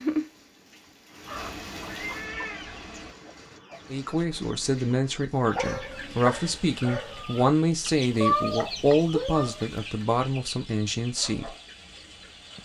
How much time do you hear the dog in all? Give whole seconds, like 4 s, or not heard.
2 s.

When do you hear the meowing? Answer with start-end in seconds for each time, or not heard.
1.4-3.1, 8.2-9.6.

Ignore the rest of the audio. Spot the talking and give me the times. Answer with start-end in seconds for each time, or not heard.
3.9-11.5.